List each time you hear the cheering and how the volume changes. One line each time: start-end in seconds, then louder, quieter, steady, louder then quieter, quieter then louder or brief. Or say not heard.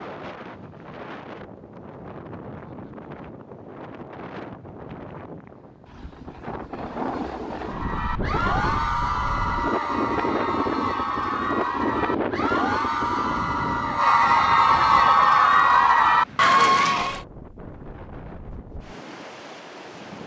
7.6-17.2 louder.